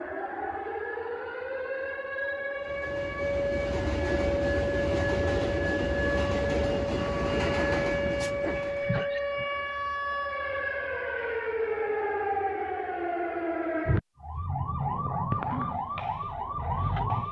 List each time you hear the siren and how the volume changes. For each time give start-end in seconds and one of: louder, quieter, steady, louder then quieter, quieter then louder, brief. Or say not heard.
0.0-17.2 steady.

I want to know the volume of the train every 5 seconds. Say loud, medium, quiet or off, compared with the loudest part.
loud, loud, off, off.